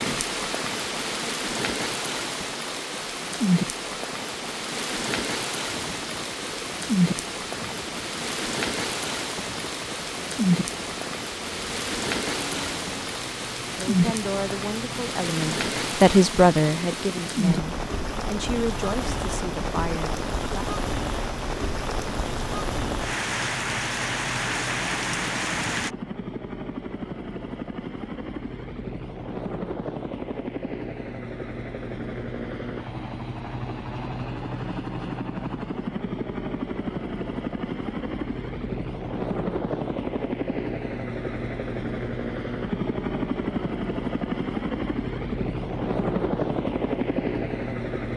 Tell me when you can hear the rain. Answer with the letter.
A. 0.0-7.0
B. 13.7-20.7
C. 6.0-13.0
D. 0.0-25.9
D.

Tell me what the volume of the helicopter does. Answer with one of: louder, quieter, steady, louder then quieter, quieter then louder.
louder.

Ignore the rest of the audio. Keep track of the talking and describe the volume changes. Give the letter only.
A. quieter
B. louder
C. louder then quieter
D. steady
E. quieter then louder
C.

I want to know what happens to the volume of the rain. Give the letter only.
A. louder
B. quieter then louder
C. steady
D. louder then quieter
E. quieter
C.